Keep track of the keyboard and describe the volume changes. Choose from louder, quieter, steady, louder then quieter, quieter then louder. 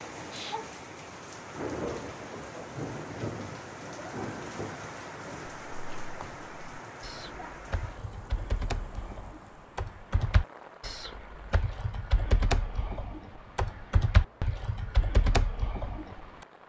louder.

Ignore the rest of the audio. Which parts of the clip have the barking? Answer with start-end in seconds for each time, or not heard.
not heard.